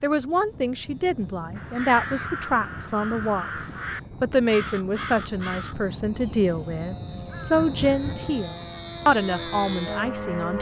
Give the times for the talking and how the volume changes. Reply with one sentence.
The talking can be heard from 0.0 to 10.5 s, at a steady volume.